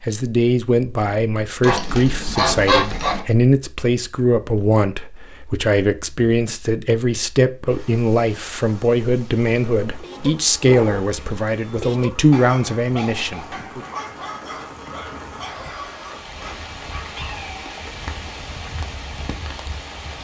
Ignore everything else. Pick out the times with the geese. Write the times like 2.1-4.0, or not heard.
1.6-3.2.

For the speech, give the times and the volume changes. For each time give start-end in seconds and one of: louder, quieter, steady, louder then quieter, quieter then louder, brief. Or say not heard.
0.0-13.8 steady.